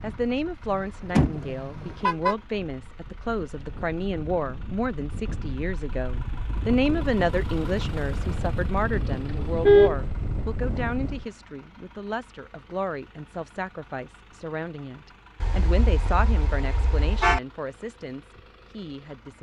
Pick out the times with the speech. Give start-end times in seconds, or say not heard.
0.0-19.3.